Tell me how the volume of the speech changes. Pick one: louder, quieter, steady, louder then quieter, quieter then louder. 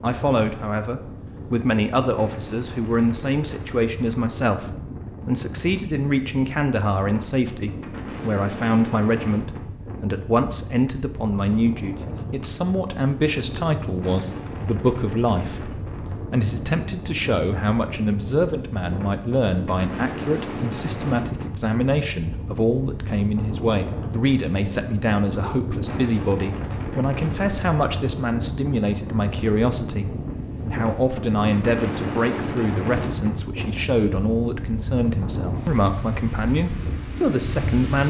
steady.